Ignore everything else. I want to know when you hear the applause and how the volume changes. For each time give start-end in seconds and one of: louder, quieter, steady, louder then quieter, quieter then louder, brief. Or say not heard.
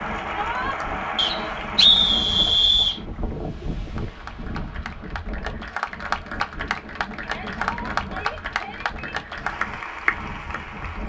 0.0-11.0 quieter then louder.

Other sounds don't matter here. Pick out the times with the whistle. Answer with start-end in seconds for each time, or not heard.
1.1-3.0.